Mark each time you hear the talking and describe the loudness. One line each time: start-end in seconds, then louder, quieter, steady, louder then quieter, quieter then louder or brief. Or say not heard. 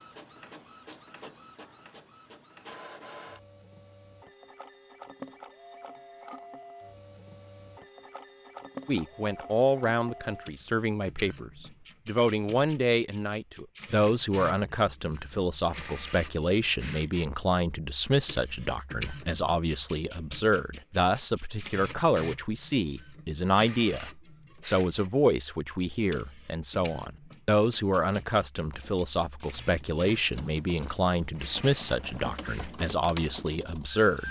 8.8-34.2 steady.